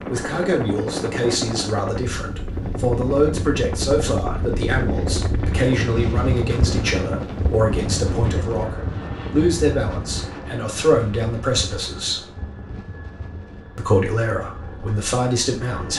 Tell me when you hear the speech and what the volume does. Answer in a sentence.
You can hear the speech from 0.0 to 12.3 s, at a steady volume; and briefly from 13.8 to 15.9 s.